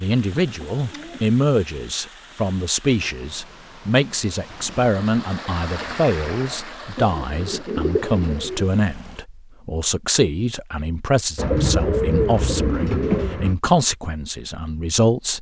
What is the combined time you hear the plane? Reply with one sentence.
The plane can't be heard in this clip.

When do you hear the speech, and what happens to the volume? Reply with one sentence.
The speech can be heard from 0.0 to 15.3 s, at a steady volume.